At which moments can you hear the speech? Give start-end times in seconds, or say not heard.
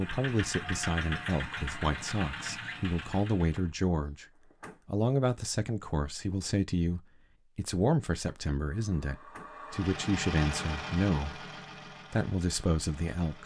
0.0-4.2, 4.8-11.4, 12.1-13.4.